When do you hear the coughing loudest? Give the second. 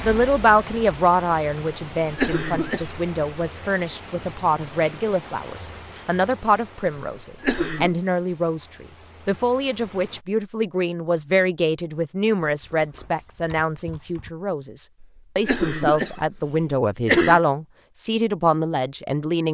17 s.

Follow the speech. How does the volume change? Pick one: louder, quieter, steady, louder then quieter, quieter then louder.
steady.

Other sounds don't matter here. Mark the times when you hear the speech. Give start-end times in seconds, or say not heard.
0.0-19.4.